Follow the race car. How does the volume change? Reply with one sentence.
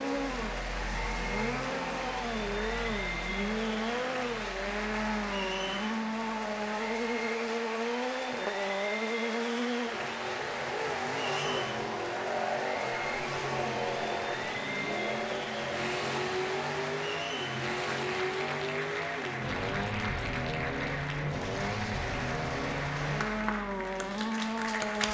The loudness of the race car stays about the same.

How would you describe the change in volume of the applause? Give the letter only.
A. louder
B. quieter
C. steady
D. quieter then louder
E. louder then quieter
C.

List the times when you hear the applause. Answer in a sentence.
You can hear the applause from 0.0 to 25.0 s.